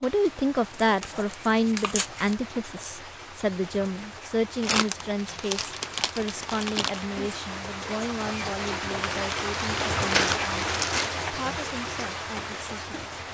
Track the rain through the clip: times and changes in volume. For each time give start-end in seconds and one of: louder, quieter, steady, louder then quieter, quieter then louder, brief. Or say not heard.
0.0-13.3 louder.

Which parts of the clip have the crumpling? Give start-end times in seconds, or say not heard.
0.8-2.4, 4.6-7.0, 9.0-11.2.